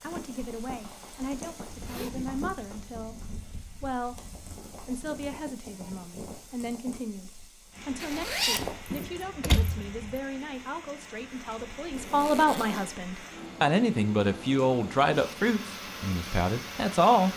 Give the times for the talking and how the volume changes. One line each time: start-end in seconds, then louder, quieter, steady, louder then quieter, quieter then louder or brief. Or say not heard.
0.0-17.3 louder.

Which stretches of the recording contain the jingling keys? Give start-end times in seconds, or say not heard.
8.9-10.2.